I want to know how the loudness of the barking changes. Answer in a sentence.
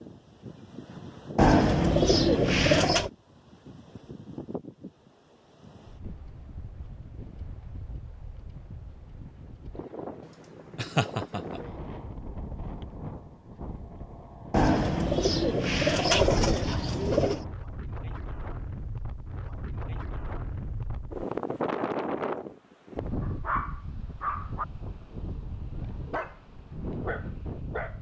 The loudness of the barking goes down, then up.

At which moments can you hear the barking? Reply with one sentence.
The barking can be heard from 23.2 to 27.9 s.